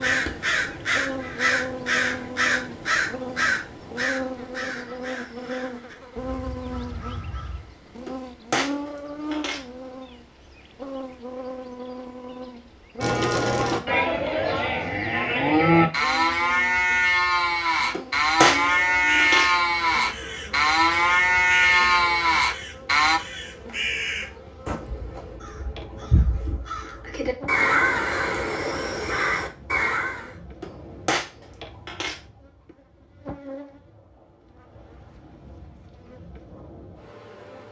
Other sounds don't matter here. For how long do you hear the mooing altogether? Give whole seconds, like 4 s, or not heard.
10 s.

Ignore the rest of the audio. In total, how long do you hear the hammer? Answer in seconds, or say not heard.
5 s.